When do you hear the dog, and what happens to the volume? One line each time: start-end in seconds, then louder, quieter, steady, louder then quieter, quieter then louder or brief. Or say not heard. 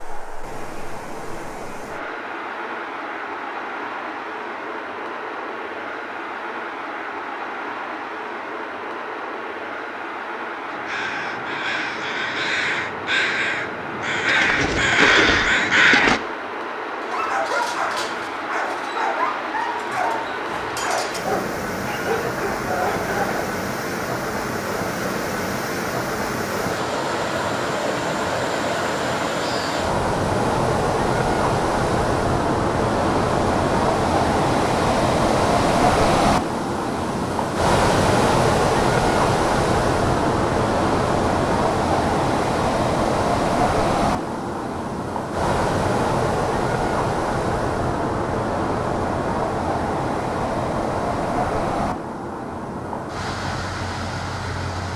16.9-23.6 steady.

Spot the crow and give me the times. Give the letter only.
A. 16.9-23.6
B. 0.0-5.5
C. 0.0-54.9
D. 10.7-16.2
D.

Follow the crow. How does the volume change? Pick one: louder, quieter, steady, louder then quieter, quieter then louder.
louder.